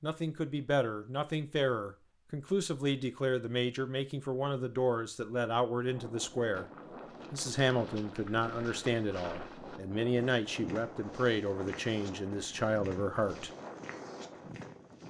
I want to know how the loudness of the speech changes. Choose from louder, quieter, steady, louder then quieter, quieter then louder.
steady.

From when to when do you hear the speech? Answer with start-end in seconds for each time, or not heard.
0.0-6.7, 7.3-13.5.